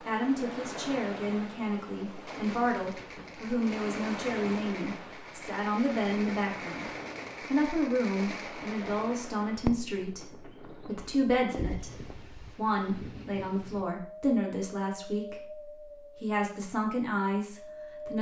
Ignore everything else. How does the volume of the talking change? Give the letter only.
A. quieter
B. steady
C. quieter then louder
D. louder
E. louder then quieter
B.